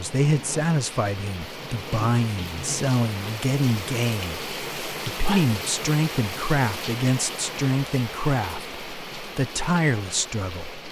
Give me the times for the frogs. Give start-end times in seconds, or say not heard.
not heard.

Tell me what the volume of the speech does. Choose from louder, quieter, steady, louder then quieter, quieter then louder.
steady.